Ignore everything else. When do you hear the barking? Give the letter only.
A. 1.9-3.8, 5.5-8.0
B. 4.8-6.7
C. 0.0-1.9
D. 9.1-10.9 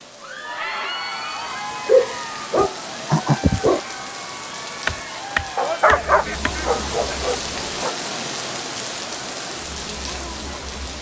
A.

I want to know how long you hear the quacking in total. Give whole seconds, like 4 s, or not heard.
2 s.